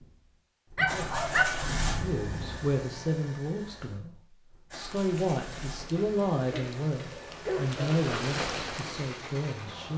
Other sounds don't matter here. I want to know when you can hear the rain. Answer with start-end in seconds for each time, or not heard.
4.8-9.9.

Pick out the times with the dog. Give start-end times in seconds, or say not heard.
0.8-2.6, 6.0-7.8.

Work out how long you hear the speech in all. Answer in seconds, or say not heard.
8 s.